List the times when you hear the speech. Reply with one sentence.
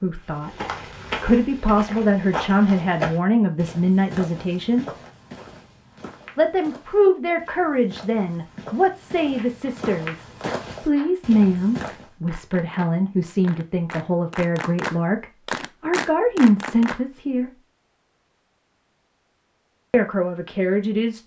The speech can be heard from 0.0 to 4.8 s, from 6.3 to 17.5 s and from 19.9 to 21.2 s.